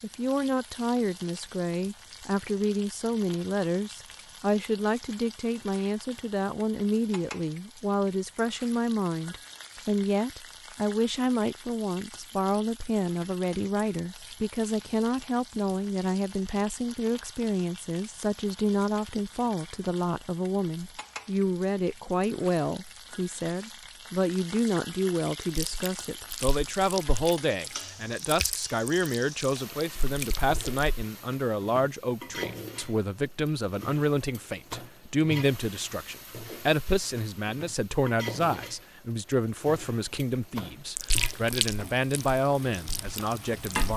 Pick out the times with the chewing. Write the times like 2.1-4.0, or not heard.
25.4-30.9, 41.0-43.9.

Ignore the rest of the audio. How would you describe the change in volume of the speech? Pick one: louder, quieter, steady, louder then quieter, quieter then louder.
steady.